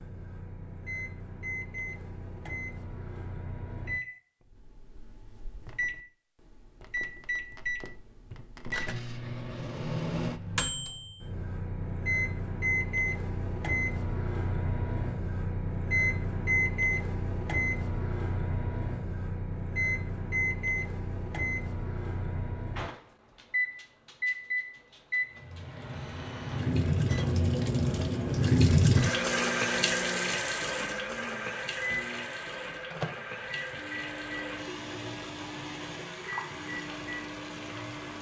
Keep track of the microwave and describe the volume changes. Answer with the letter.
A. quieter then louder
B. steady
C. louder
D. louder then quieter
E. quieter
D.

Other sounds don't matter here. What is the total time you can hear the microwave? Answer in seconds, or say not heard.
38 s.